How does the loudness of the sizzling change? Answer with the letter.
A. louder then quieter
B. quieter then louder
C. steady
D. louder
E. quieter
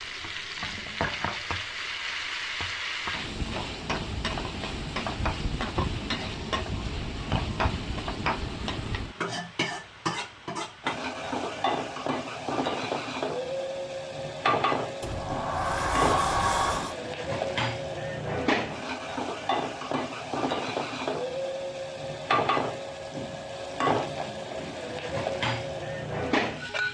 C.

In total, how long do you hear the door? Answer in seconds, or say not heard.
2 s.